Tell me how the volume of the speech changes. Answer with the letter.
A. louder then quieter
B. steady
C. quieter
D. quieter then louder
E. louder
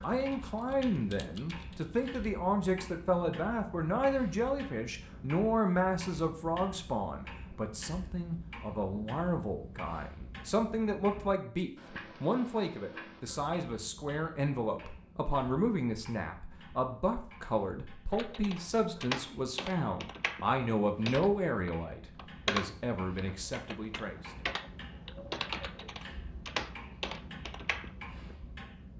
B.